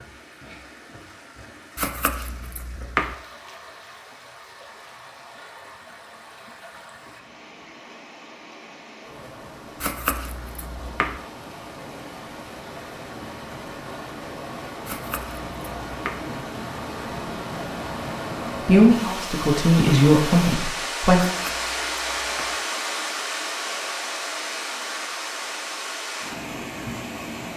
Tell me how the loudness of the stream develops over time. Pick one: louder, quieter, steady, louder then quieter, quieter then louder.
louder.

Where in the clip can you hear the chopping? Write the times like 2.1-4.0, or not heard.
1.8-3.1, 9.8-11.2, 14.8-16.2, 21.2-22.6.